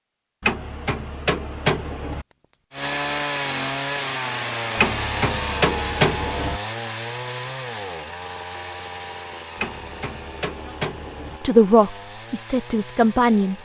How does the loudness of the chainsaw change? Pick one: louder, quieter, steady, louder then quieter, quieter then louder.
quieter.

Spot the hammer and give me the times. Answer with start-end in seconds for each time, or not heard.
0.4-2.2, 4.8-6.6, 9.6-11.4.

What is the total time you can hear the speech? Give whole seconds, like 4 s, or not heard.
2 s.